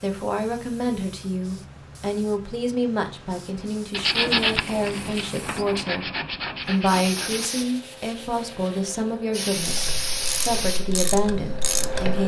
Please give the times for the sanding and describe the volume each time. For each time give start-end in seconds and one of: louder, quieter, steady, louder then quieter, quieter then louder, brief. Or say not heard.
3.9-9.2 quieter.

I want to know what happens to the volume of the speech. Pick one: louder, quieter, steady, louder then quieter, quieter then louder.
steady.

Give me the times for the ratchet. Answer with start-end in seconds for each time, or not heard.
9.6-12.2.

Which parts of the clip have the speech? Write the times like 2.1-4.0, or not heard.
0.0-12.2.